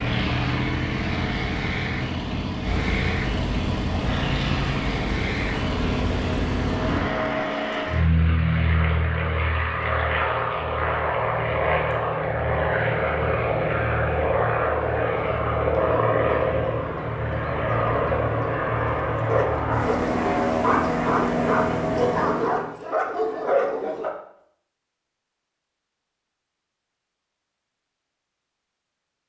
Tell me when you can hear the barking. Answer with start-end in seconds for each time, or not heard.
18.9-24.1.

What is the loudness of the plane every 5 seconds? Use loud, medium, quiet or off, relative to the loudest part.
loud, loud, loud, loud, loud, off.